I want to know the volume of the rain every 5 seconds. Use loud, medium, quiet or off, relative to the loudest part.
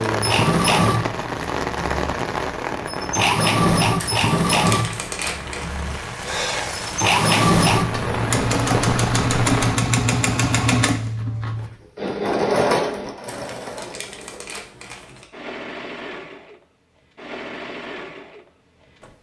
loud, loud, off, off.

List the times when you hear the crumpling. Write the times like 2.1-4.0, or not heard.
4.0-5.7, 13.2-15.2.